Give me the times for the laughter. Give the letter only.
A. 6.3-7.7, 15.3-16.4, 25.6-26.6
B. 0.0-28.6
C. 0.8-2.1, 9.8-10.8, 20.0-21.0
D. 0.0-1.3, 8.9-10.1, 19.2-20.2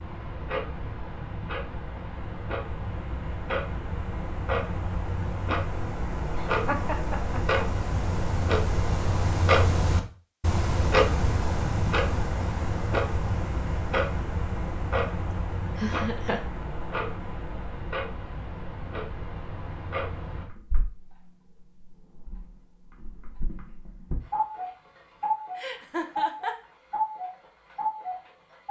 A.